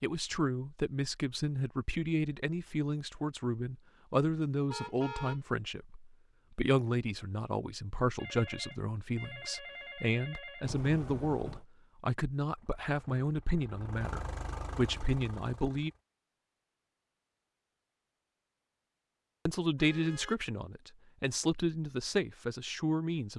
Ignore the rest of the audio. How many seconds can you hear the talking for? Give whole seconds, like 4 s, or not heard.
20 s.